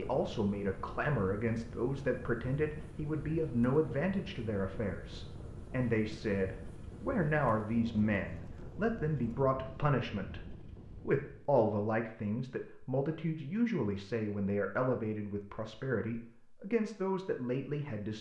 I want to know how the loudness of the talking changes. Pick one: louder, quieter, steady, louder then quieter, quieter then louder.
steady.